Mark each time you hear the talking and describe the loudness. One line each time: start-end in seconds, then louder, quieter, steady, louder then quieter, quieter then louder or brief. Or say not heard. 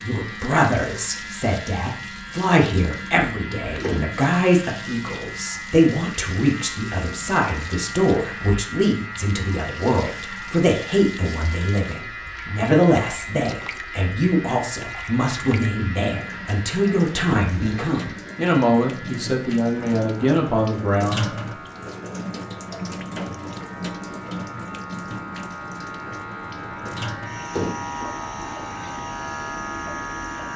0.0-21.3 steady.